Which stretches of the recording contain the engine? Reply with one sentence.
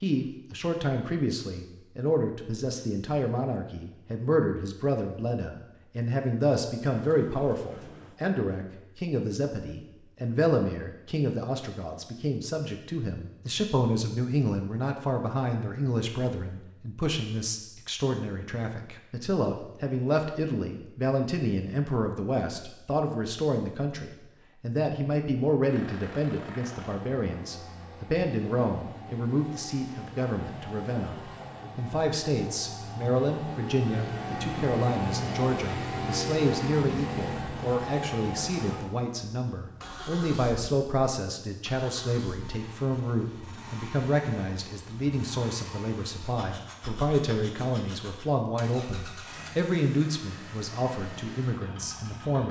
The engine can be heard from 25.6 to 52.4 s.